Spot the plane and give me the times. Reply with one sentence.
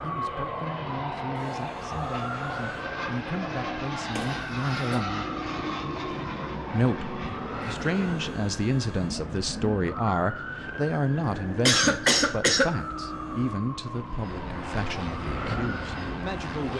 You can hear the plane from 0.0 to 8.4 s and from 14.1 to 16.7 s.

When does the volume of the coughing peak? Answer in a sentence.
The loudest moment of the coughing is at 12 seconds.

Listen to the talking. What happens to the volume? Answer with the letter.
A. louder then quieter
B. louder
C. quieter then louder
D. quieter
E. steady
A.